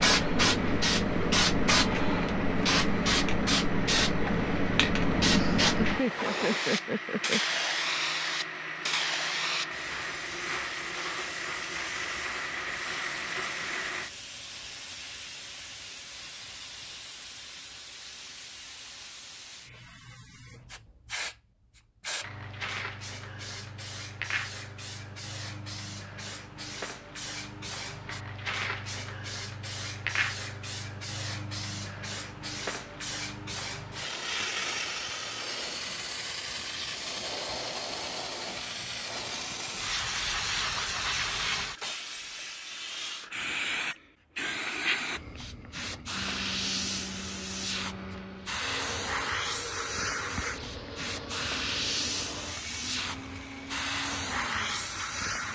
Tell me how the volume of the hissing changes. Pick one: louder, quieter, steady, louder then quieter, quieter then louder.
quieter then louder.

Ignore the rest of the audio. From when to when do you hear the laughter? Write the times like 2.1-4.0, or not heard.
5.3-7.4.